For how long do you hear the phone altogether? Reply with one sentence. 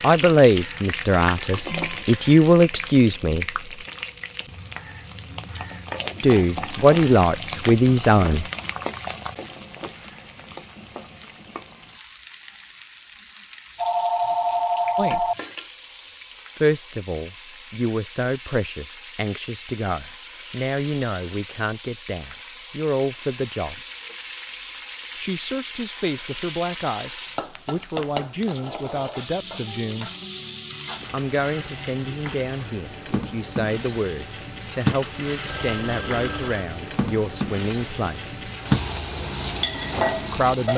The phone can be heard for 3 seconds in total.